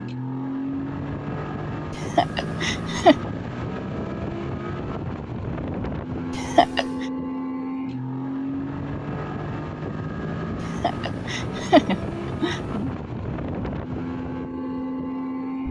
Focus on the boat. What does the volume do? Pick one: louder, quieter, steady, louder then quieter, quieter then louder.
steady.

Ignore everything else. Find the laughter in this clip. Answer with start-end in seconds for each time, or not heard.
1.9-3.2, 6.3-7.0, 10.8-12.9.